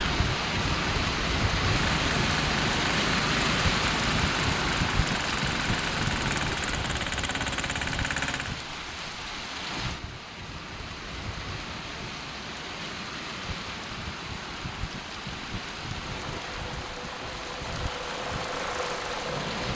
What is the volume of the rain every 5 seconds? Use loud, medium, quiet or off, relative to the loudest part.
loud, medium, medium, medium.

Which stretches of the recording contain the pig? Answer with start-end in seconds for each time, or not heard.
not heard.